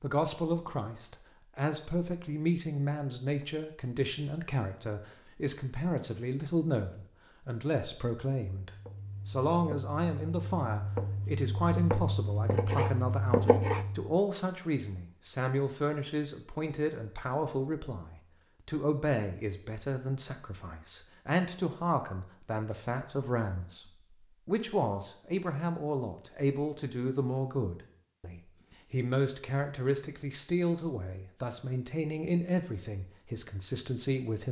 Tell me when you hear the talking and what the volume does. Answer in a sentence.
You can hear the talking from 0.0 to 34.4 s, at a steady volume.